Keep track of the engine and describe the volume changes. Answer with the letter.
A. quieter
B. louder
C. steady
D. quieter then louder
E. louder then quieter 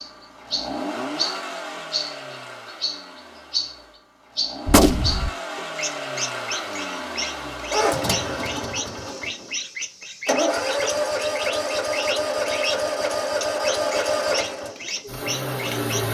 B.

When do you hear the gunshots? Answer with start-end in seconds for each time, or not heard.
4.7-5.3.